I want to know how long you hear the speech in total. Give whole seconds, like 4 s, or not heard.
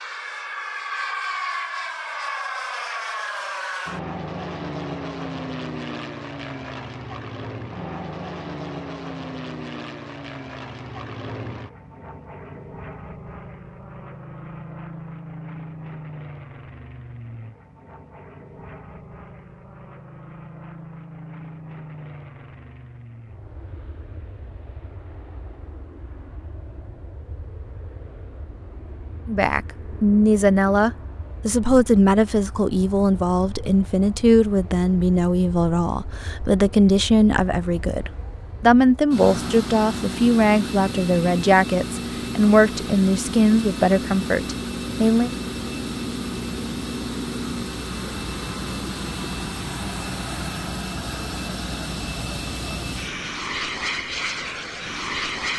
16 s.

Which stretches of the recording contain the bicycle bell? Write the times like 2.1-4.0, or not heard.
not heard.